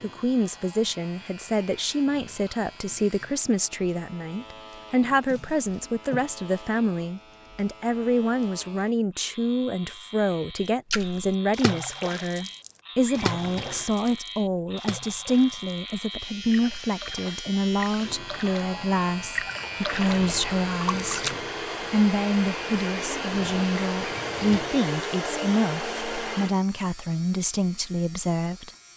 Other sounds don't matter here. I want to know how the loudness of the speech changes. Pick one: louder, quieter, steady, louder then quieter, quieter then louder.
steady.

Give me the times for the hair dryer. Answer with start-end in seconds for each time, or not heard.
19.8-26.6.